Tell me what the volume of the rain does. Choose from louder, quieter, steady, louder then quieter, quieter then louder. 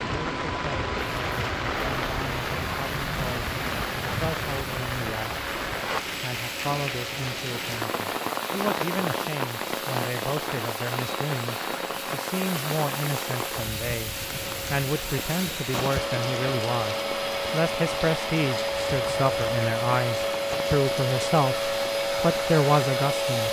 quieter.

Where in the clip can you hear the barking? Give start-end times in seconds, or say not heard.
not heard.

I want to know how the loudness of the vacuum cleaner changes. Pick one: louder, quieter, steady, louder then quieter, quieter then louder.
louder.